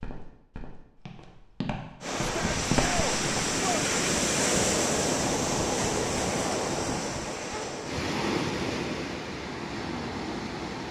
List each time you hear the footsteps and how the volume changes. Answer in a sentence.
The footsteps can be heard from 0.0 to 4.0 s, getting louder then quieter.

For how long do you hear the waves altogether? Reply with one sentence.
You can hear the waves for 9 seconds altogether.